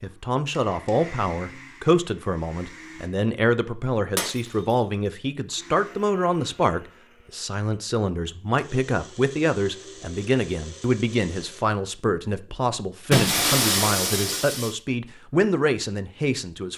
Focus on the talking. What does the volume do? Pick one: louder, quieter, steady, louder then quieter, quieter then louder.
steady.